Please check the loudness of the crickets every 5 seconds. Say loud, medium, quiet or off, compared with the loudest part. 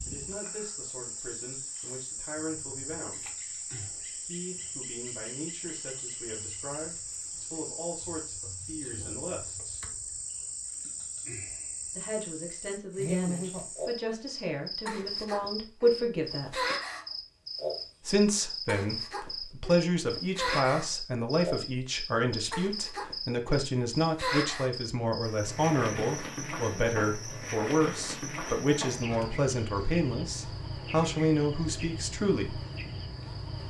medium, medium, loud, loud, loud, loud, medium.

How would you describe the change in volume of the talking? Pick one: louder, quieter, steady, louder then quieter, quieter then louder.
louder.